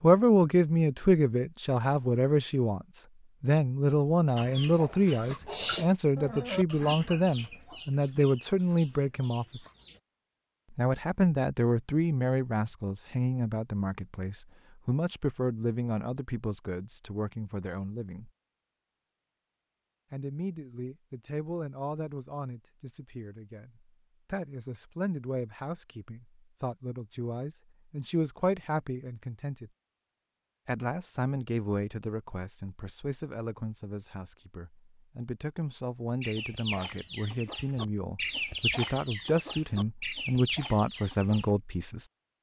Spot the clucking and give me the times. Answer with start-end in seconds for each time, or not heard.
4.3-10.0, 36.2-41.5.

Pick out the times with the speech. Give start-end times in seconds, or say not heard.
0.0-9.6, 10.7-18.3, 20.1-29.7, 30.6-42.0.